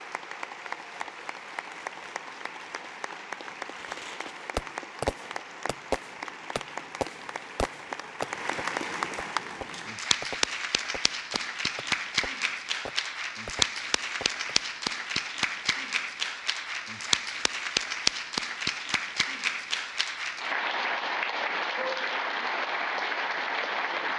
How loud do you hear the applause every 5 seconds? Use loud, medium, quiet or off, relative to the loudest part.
medium, medium, loud, loud, loud.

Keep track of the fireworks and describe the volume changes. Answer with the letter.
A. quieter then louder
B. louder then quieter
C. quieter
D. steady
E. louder
C.